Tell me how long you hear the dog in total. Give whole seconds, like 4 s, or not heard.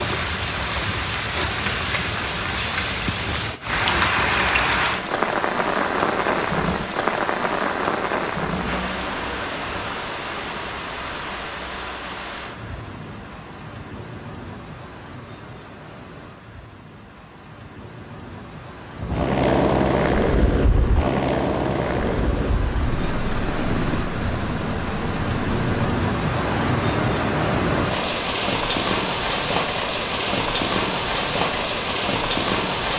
not heard.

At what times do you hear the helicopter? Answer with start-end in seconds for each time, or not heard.
18.9-28.2.